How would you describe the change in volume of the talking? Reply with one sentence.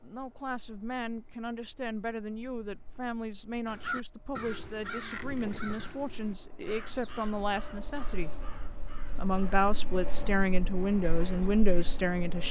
The volume of the talking goes up.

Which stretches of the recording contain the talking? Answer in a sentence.
You can hear the talking from 0.0 to 8.3 s and from 9.2 to 12.4 s.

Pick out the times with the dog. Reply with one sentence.
You can't hear the dog here.